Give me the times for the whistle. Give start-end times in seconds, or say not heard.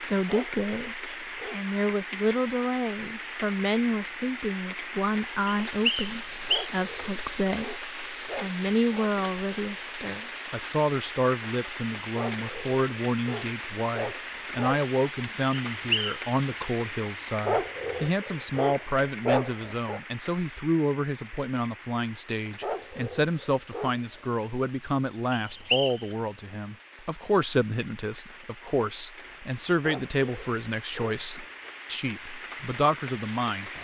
5.5-6.7, 15.7-16.2, 25.3-26.1.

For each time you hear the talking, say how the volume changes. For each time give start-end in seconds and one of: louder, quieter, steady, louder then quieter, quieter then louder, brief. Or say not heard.
0.0-33.7 steady.